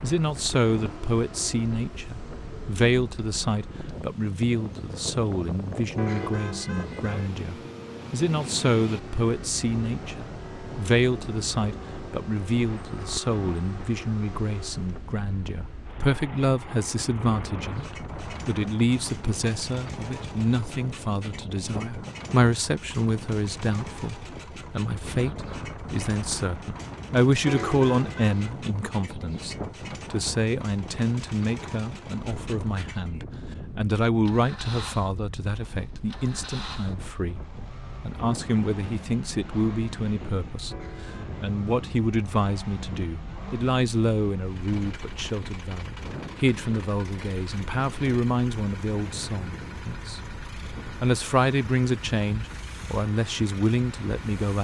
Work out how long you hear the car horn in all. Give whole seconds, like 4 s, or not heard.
3 s.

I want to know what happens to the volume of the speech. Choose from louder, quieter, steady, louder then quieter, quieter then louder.
steady.